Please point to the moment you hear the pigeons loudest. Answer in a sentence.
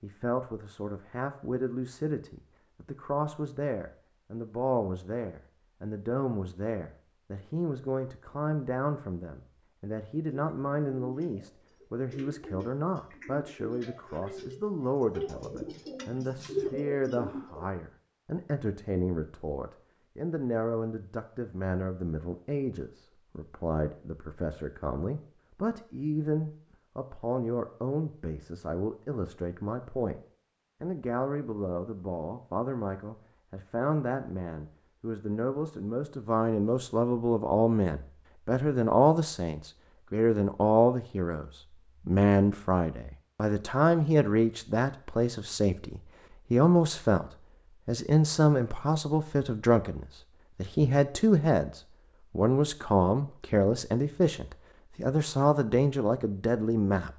The volume of the pigeons peaks at 17 seconds.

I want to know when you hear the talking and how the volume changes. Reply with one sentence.
You can hear the talking from 0.0 to 30.2 s, at a steady volume; and from 30.8 to 57.1 s, getting louder.